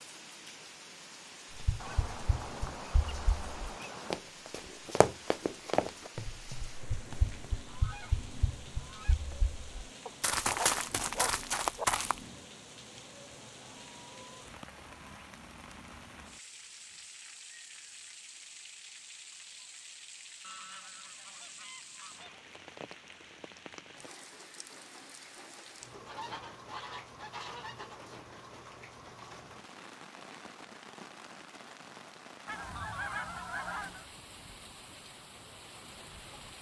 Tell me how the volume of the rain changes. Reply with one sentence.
The volume of the rain stays about the same.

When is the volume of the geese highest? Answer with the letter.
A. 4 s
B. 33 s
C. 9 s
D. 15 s
B.